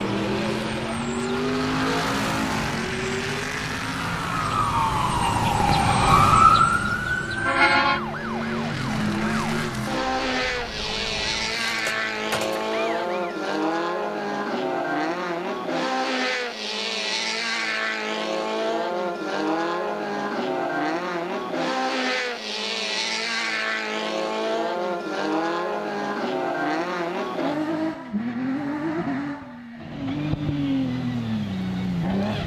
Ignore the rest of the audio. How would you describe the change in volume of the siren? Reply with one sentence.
The loudness of the siren goes up, then down.